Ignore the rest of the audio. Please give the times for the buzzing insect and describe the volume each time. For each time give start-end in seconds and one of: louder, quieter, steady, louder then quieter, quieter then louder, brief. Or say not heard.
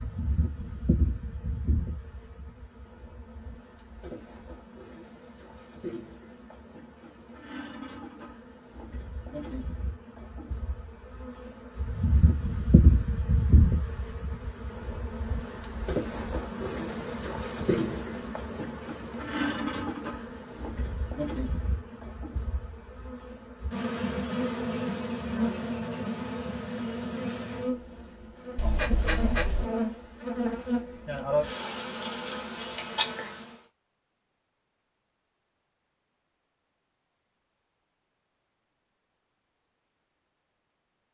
0.0-33.6 louder.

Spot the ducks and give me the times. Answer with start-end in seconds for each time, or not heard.
28.6-29.6.